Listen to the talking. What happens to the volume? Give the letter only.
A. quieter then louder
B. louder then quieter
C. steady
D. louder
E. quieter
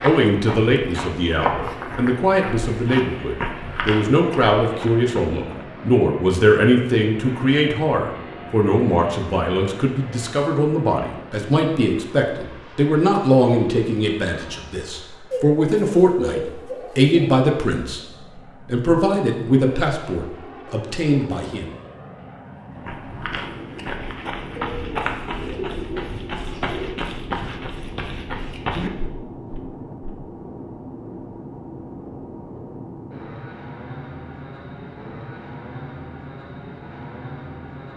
C.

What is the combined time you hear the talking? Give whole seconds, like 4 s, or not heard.
22 s.